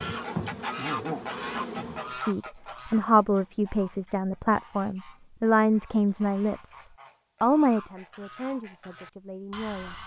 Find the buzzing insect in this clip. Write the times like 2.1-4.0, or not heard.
0.0-2.1.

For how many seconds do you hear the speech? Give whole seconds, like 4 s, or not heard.
8 s.